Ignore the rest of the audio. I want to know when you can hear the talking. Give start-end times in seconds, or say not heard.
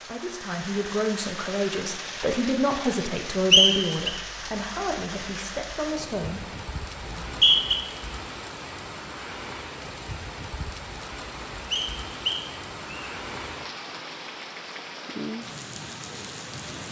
0.1-6.5.